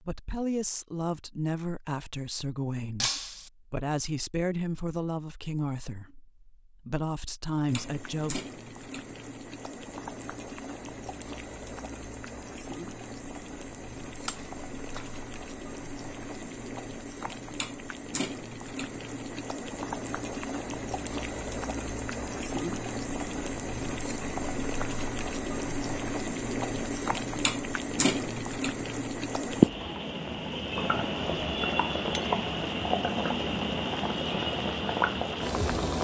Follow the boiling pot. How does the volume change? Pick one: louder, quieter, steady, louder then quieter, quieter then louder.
louder.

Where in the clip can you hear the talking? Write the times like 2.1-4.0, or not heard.
0.0-8.4.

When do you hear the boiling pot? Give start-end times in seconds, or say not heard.
7.7-35.9.